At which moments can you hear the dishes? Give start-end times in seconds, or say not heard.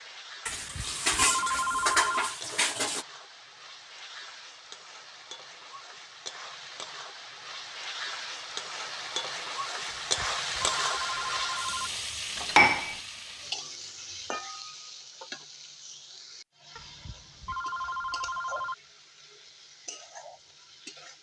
0.5-3.0, 12.3-12.9.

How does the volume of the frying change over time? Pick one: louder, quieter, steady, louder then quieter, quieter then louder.
louder then quieter.